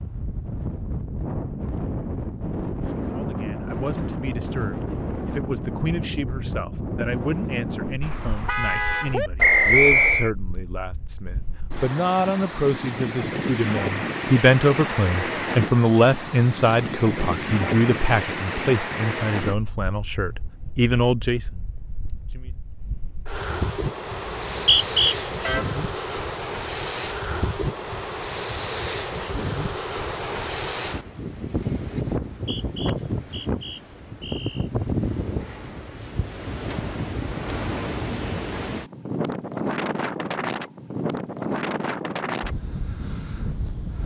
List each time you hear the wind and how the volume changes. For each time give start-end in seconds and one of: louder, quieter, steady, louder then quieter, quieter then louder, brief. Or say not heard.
0.0-44.0 steady.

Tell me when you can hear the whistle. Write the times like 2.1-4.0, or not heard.
9.4-10.3, 24.3-25.1, 32.3-34.7.